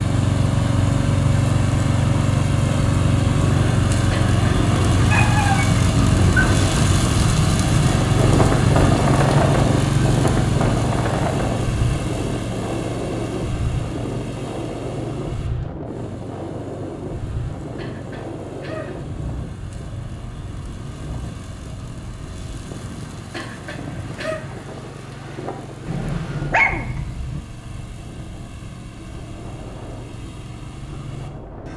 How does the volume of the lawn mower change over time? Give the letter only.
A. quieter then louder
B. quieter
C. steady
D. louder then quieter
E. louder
B.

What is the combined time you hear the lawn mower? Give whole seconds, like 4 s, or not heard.
32 s.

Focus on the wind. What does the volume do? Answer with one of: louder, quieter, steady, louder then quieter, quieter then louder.
quieter.